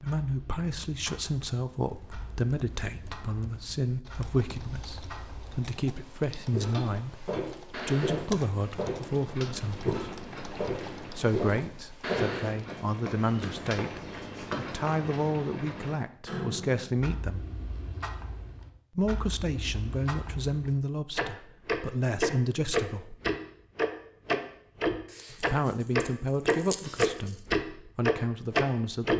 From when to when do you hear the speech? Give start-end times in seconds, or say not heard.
0.0-10.1, 11.2-17.4, 18.9-23.1, 25.3-29.1.